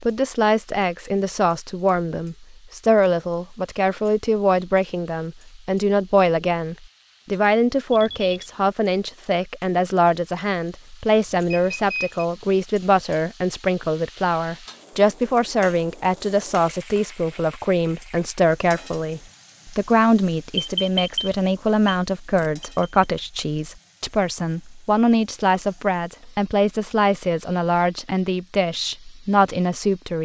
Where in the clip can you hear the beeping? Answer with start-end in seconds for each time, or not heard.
7.9-8.5, 11.3-12.2, 20.6-22.9.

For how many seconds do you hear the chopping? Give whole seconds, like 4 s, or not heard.
not heard.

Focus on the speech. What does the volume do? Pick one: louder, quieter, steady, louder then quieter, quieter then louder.
steady.